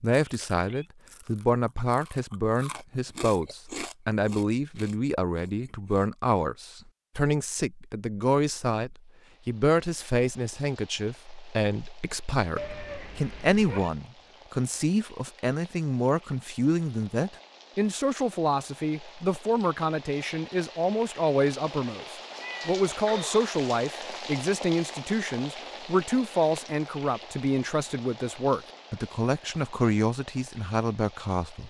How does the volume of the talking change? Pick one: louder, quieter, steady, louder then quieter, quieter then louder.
steady.